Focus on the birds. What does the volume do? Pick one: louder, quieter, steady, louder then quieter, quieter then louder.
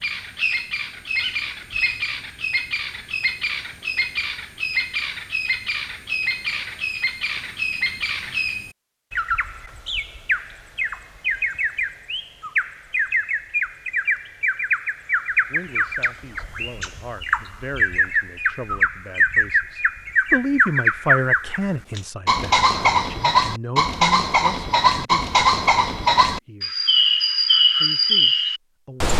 louder.